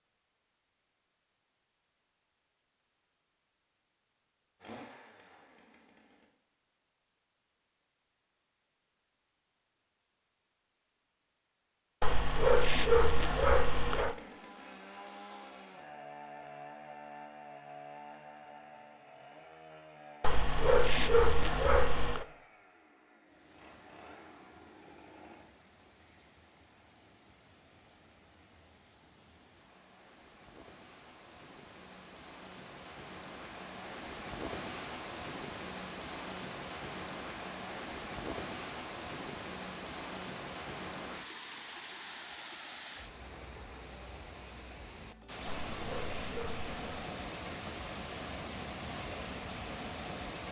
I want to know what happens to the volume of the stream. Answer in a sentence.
The volume of the stream goes up.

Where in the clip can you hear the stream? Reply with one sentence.
You can hear the stream from 23.2 to 50.4 s.